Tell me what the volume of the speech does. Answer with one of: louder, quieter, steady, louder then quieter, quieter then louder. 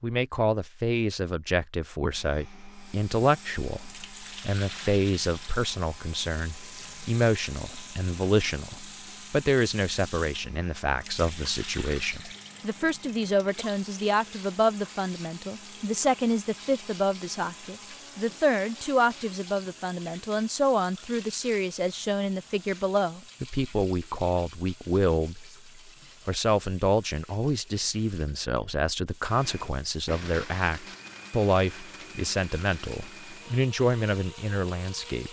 steady.